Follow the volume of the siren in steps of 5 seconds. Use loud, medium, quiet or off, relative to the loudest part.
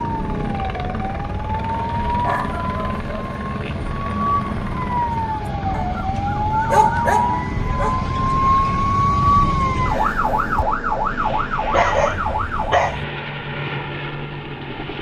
medium, loud, loud.